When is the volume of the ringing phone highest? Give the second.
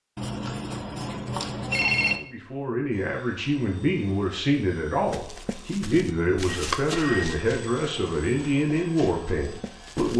2 s.